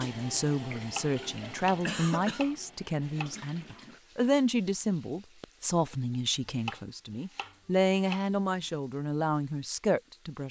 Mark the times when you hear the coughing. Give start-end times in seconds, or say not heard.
1.9-2.5, 5.4-6.2.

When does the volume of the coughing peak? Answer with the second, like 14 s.
2 s.